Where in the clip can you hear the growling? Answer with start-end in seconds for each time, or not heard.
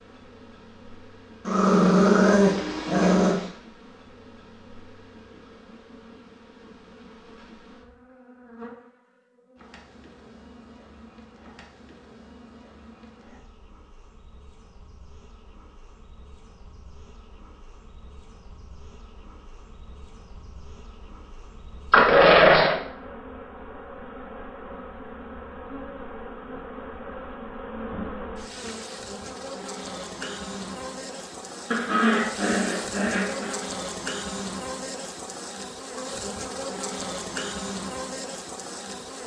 1.4-3.5, 21.9-22.8, 31.7-33.6.